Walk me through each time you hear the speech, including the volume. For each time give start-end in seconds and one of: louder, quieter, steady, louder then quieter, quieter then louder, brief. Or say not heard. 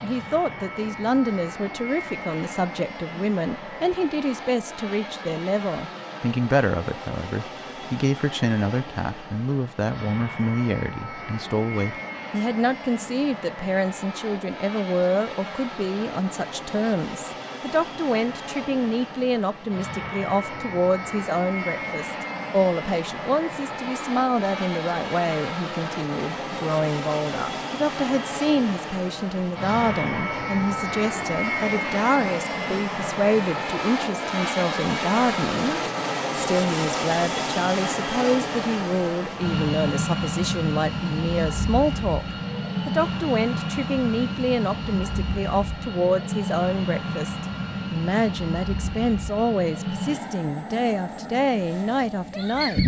0.0-52.8 steady.